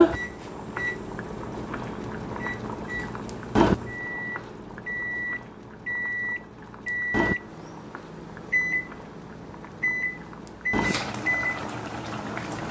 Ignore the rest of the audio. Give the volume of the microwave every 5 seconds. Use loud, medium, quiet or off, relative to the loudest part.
medium, loud, loud.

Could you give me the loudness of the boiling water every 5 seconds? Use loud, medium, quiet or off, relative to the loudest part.
loud, medium, medium.